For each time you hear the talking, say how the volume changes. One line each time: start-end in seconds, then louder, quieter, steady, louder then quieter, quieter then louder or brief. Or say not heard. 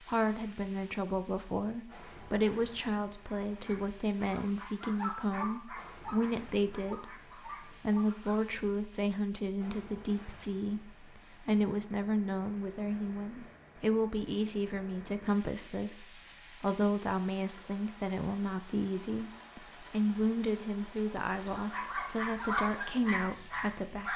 0.0-24.1 steady.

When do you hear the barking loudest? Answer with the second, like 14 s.
23 s.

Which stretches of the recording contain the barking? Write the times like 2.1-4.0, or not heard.
3.5-8.4, 21.5-24.1.